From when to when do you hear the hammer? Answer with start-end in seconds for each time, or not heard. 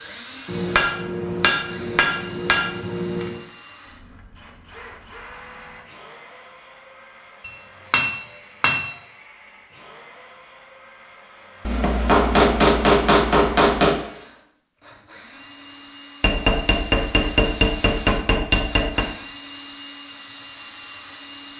0.5-3.4, 7.5-8.9, 11.7-13.9, 16.2-19.1.